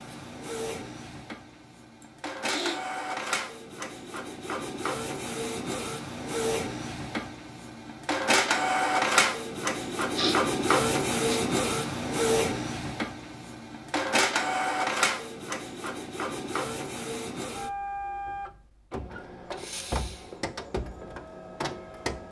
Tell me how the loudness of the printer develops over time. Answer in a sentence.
The volume of the printer goes up, then down.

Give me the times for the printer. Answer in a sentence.
You can hear the printer from 0.0 to 22.2 s.